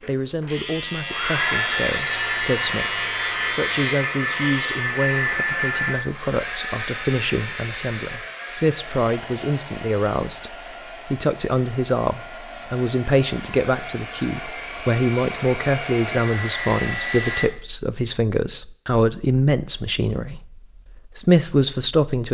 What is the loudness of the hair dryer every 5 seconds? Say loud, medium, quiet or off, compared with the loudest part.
loud, loud, medium, loud, off.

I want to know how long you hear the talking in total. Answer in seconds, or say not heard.
22 s.